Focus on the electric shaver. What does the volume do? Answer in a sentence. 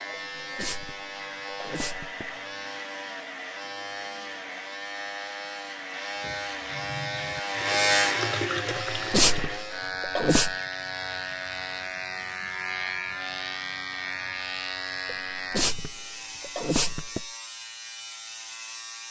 The volume of the electric shaver goes up, then down.